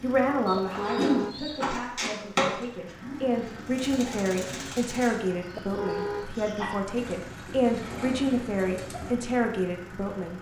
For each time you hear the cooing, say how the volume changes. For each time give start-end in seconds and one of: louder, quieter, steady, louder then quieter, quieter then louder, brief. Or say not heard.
0.5-9.2 quieter.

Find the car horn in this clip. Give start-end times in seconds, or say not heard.
0.6-1.4, 5.5-6.3.